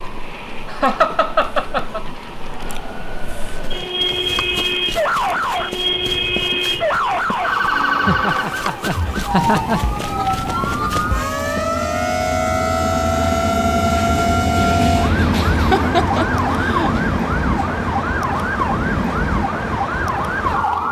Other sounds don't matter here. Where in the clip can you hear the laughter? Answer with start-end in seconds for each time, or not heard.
0.7-2.0, 8.0-9.8, 15.5-17.0.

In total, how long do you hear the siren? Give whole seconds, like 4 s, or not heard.
21 s.